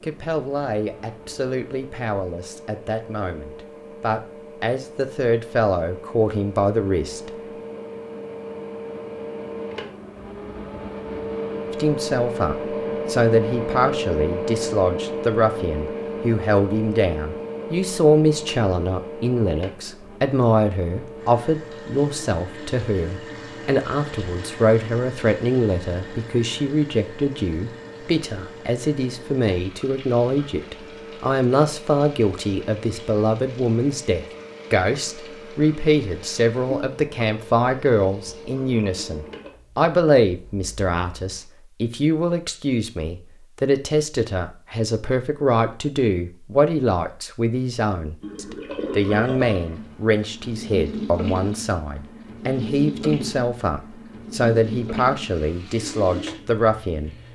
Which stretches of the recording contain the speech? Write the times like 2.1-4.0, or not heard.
0.0-7.3, 11.7-57.1.